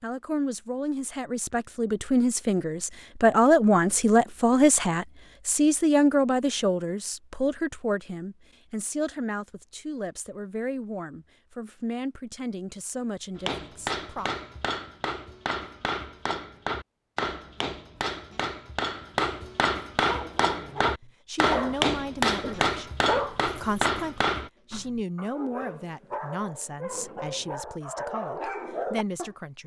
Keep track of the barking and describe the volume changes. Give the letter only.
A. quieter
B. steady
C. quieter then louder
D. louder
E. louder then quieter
C.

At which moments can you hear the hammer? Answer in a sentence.
You can hear the hammer from 13.3 to 24.5 s.